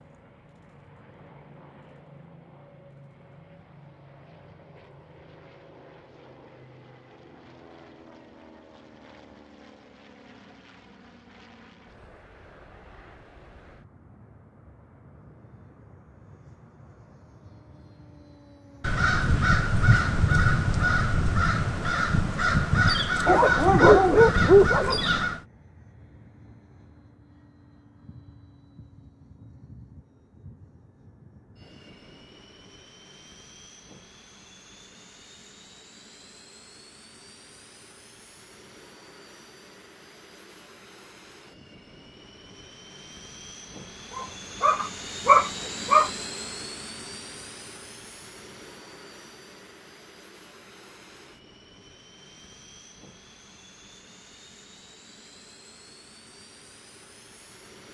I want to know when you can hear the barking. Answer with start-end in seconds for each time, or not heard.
23.2-25.1, 44.1-46.1.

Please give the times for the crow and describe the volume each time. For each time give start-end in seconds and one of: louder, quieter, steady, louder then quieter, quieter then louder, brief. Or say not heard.
18.8-25.4 steady.